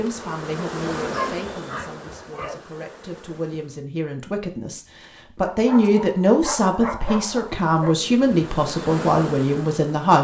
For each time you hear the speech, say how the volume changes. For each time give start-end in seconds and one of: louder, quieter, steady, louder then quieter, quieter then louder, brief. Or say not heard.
0.0-10.2 louder.